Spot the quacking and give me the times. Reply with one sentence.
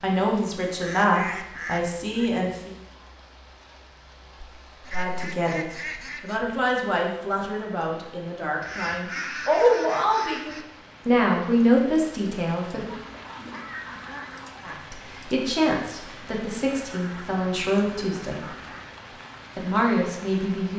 The quacking can be heard from 0.8 to 2.3 s, from 4.7 to 6.4 s, from 8.6 to 10.7 s, from 12.7 to 14.8 s and from 16.6 to 18.9 s.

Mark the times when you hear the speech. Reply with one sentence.
The speech can be heard from 0.0 to 2.8 s, from 4.9 to 12.9 s, from 14.7 to 18.4 s and from 19.6 to 20.7 s.